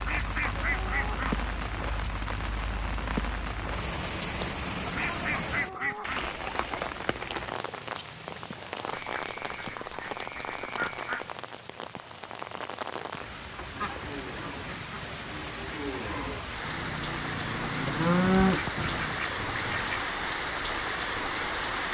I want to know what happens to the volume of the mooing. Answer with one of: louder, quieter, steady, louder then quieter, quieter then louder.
louder.